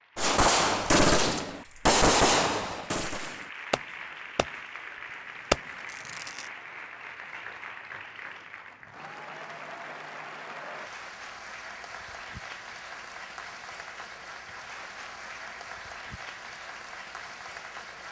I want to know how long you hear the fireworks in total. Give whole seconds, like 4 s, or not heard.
5 s.